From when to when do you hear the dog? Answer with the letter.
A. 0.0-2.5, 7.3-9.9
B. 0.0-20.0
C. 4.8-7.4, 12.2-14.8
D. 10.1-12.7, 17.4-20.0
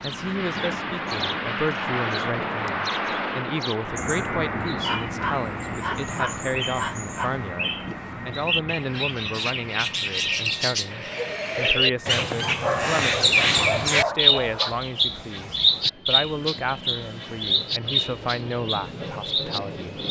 C.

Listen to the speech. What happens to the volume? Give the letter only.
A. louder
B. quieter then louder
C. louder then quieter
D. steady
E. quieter
D.